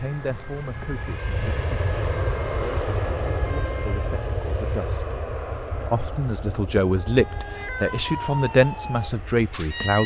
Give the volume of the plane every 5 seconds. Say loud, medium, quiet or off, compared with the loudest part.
loud, medium.